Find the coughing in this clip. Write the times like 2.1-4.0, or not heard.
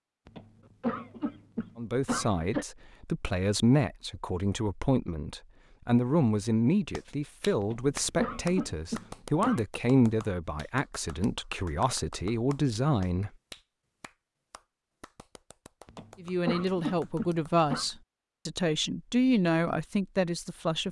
0.2-2.6, 7.6-9.6, 15.8-17.9.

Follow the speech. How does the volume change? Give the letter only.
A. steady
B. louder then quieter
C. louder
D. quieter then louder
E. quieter
A.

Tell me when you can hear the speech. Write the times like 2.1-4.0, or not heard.
1.8-13.3, 16.2-20.8.